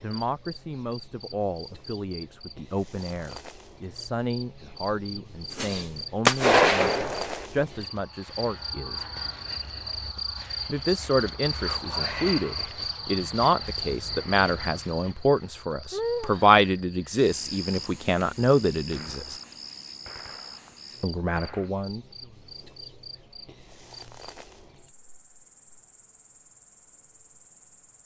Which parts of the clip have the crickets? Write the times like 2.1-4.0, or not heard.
0.0-28.0.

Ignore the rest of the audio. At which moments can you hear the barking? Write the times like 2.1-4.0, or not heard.
not heard.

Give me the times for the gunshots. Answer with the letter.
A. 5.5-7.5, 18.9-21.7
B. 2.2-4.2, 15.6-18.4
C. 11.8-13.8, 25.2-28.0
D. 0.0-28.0
A.